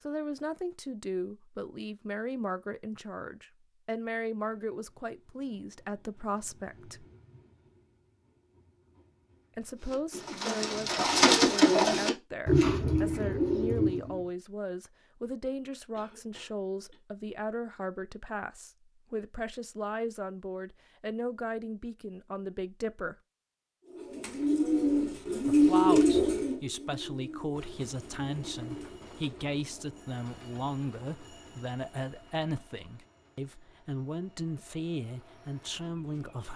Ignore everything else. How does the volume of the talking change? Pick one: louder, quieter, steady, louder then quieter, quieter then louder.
steady.